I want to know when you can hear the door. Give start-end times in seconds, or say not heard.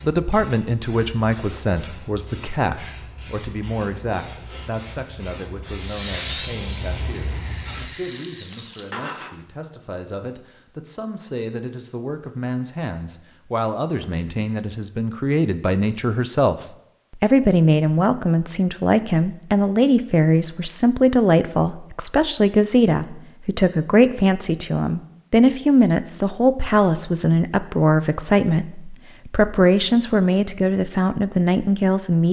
not heard.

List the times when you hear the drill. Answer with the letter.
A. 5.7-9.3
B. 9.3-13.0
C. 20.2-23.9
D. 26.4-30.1
A.